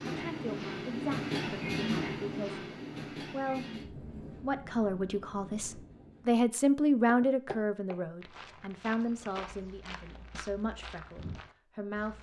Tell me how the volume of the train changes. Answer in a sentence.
The volume of the train goes down.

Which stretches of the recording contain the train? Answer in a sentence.
The train can be heard from 0.0 to 6.5 s.